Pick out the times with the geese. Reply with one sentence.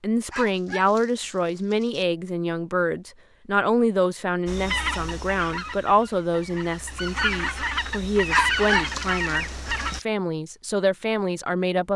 You can hear the geese from 4.5 to 10.0 s.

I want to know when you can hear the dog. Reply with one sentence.
The dog can be heard from 0.3 to 2.0 s and from 8.3 to 10.1 s.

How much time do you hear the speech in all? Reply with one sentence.
You can hear the speech for 12 seconds altogether.